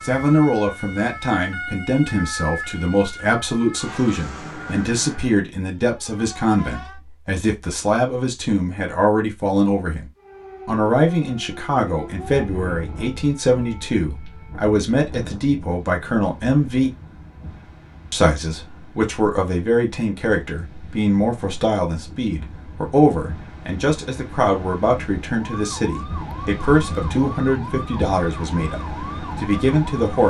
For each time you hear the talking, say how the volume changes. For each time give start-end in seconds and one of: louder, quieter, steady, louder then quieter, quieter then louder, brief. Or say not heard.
0.0-16.9 steady
18.1-30.2 steady.